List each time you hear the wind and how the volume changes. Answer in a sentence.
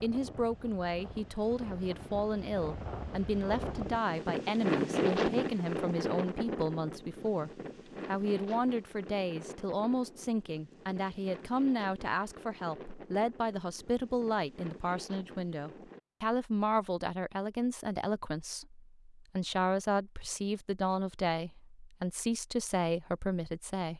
The wind can be heard from 0.0 to 16.0 s, getting louder then quieter.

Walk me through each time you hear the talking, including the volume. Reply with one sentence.
You can hear the talking from 0.0 to 23.9 s, at a steady volume.